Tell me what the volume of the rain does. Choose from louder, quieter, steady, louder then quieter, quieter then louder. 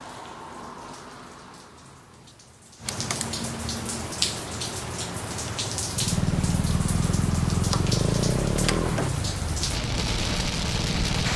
louder.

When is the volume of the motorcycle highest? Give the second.
8 s.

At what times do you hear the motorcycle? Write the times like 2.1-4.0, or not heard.
5.9-11.3.